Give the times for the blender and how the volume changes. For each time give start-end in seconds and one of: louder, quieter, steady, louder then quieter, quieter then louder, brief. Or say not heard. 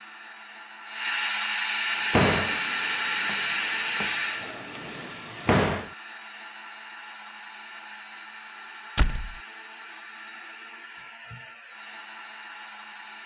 0.0-13.2 quieter.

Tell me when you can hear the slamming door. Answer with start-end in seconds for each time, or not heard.
2.1-2.5, 5.5-5.9, 8.9-9.3.